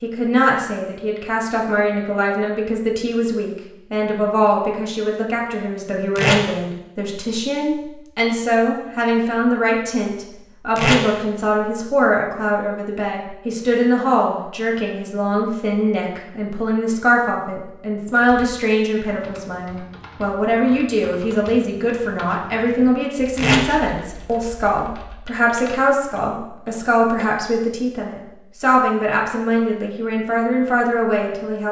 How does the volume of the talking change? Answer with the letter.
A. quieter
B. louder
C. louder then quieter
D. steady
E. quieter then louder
D.